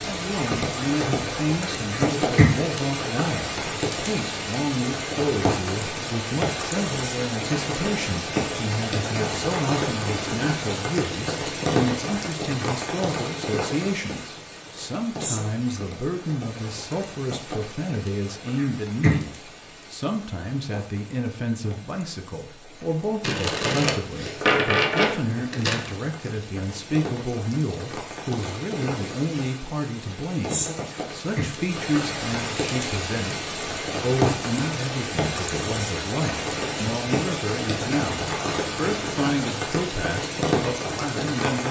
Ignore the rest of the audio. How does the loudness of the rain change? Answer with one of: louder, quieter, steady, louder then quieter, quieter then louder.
quieter then louder.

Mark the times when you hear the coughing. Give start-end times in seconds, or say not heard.
1.9-2.5, 18.6-19.1, 30.9-31.6.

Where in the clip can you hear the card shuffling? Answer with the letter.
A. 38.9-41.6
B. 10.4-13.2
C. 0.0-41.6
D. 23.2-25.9
D.